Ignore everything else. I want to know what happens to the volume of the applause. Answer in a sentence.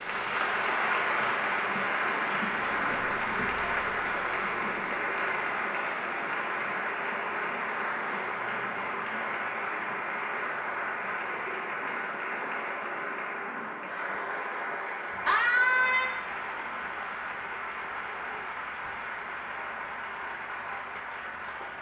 The volume of the applause goes down.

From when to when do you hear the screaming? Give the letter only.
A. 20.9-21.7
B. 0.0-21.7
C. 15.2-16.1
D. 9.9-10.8
C.